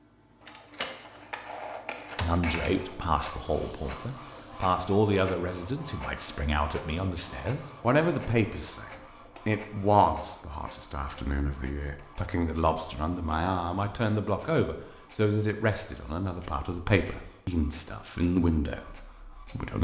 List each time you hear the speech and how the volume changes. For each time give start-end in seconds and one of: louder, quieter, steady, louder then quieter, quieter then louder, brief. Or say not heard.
2.2-19.8 steady.